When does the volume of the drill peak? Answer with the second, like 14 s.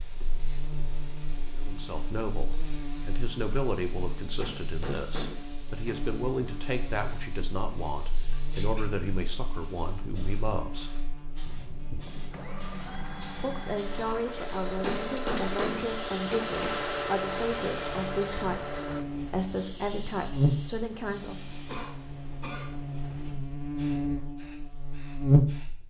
17 s.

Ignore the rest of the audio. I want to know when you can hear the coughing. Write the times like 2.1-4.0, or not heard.
21.6-22.7.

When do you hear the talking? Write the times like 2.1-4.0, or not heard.
1.6-10.9, 13.3-21.6.